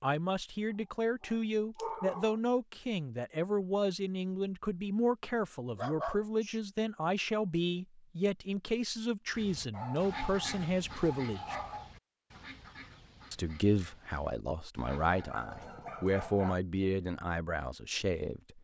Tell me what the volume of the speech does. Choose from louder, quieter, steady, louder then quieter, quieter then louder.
steady.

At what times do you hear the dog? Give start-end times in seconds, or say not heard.
0.8-2.4, 5.7-6.6, 9.7-11.9, 14.8-16.6.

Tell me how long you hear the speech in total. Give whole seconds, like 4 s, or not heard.
17 s.